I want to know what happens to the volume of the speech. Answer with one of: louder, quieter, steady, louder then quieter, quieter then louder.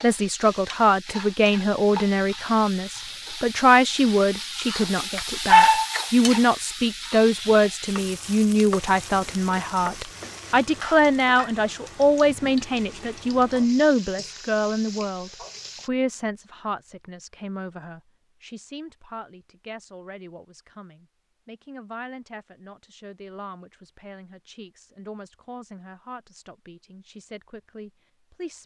quieter.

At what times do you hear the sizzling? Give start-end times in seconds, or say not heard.
0.0-15.9.